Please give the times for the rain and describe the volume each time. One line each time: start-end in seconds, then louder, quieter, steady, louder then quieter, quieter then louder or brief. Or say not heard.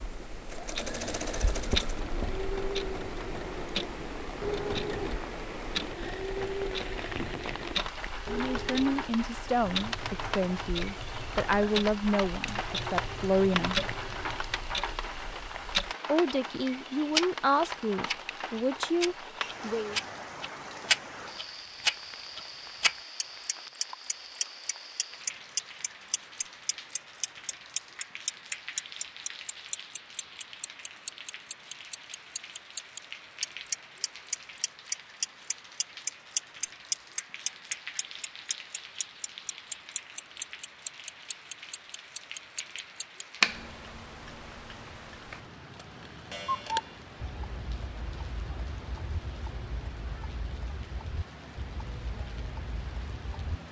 0.0-53.6 quieter.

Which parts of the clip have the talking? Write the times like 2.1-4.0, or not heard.
8.3-13.8, 16.1-20.0.